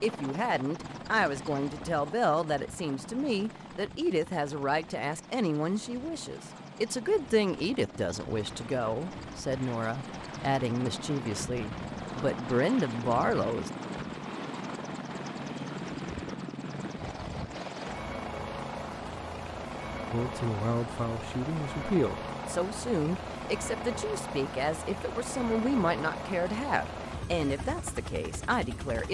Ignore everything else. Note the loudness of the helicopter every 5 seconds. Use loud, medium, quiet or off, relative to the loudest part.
medium, medium, loud, loud, loud, loud.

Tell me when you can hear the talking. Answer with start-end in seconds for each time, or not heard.
0.0-13.7, 20.1-29.0.